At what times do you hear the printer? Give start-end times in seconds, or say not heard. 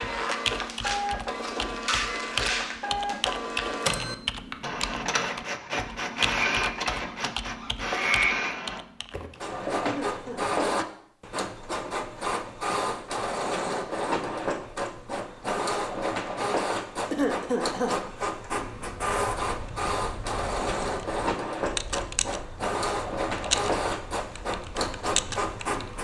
0.0-25.9.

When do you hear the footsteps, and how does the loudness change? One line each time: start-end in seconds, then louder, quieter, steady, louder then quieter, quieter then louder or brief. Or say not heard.
not heard.